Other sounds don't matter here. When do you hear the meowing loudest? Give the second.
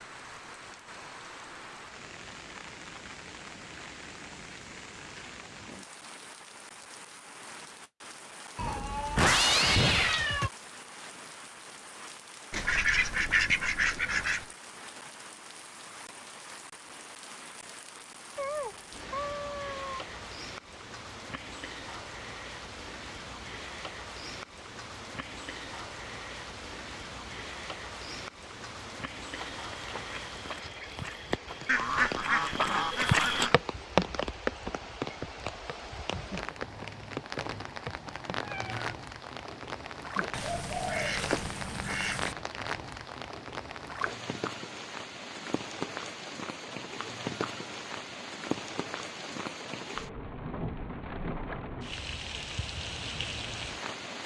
9 s.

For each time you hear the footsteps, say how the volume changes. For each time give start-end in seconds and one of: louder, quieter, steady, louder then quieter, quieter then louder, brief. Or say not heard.
29.4-38.5 louder then quieter.